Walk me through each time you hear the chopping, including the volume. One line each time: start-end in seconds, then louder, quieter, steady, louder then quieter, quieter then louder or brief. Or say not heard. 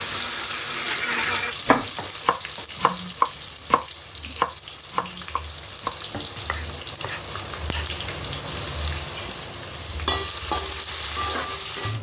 1.6-7.9 louder then quieter.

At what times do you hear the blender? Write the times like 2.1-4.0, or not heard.
0.0-1.6.